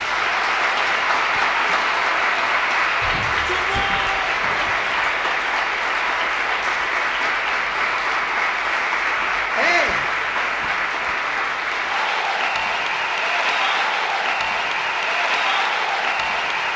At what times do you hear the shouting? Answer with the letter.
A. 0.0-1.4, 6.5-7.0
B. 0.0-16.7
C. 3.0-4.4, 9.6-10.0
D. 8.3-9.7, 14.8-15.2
C.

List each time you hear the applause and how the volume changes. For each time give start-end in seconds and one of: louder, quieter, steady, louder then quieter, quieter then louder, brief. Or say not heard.
0.0-16.7 steady.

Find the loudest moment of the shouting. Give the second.
10 s.